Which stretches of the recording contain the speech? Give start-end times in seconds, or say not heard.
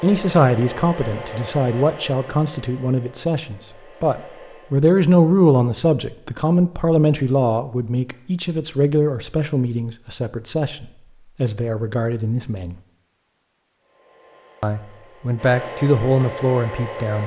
0.0-12.8, 14.6-17.2.